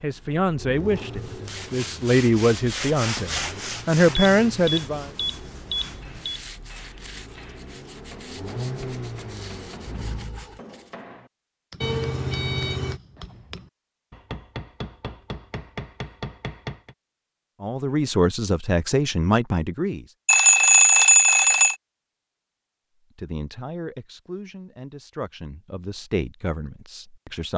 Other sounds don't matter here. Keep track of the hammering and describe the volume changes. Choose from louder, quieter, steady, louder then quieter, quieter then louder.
louder.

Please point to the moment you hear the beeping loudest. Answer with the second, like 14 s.
21 s.